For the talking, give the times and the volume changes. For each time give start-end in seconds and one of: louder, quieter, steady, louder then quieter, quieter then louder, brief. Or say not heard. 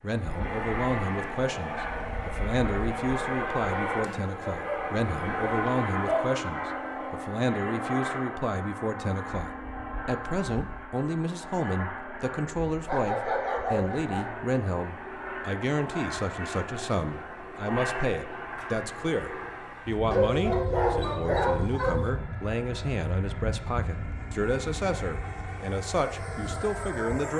0.0-27.3 steady.